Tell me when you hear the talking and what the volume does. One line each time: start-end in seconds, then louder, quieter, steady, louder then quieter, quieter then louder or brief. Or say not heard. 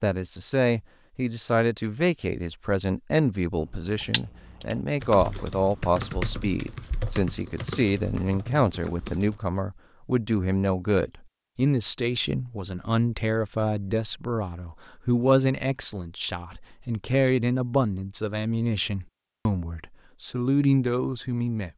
0.0-21.7 steady.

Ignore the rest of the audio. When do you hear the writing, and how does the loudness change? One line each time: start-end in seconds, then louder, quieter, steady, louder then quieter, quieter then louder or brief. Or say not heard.
not heard.